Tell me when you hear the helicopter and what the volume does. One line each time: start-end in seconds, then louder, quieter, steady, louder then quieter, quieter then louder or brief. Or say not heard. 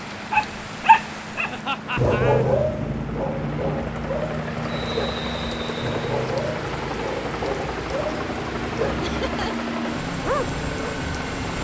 0.0-11.5 louder.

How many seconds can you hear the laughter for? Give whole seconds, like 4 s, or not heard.
2 s.